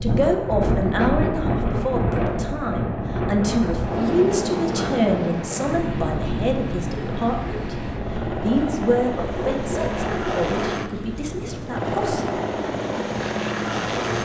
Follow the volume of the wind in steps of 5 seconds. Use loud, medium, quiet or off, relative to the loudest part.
loud, medium, medium.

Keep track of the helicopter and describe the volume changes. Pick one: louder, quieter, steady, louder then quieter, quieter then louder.
louder.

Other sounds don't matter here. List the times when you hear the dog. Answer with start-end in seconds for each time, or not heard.
9.2-10.6.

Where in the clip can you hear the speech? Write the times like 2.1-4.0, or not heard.
0.0-12.3.